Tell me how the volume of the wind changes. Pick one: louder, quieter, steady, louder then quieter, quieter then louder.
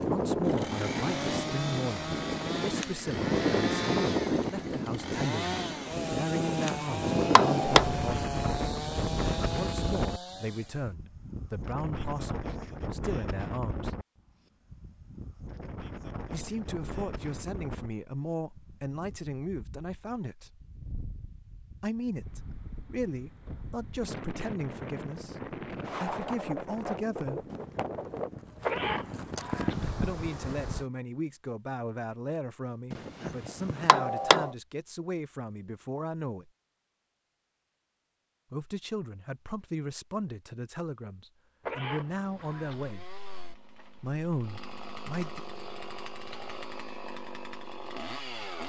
quieter then louder.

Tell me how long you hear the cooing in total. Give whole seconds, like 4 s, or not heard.
not heard.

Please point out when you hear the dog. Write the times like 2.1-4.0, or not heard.
not heard.